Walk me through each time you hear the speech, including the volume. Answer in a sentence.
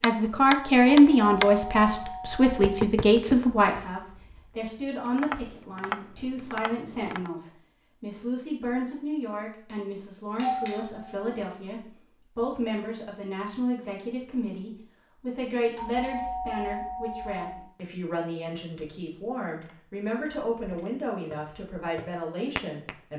The speech can be heard from 0.0 to 23.1 s, getting quieter.